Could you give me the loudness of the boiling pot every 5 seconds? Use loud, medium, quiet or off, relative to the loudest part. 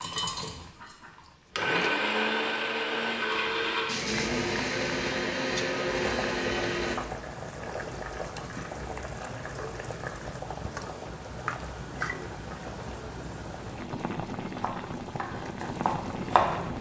medium, loud, loud, loud.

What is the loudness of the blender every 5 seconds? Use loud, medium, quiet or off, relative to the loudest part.
loud, loud, off, off.